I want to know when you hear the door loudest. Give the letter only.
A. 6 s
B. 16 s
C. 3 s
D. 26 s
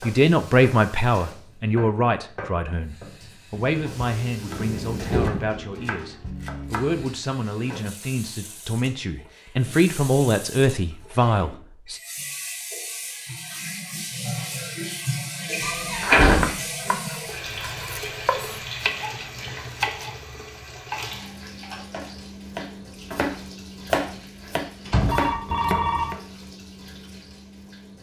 B.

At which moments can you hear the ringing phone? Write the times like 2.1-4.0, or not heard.
25.0-26.1.